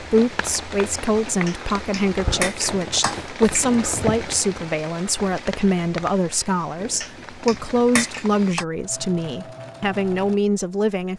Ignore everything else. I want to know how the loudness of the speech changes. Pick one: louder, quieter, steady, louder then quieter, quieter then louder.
steady.